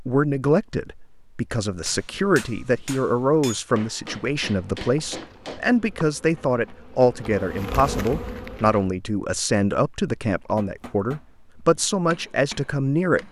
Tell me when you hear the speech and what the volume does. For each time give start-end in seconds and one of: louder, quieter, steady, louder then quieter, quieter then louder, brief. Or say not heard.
0.0-13.2 steady.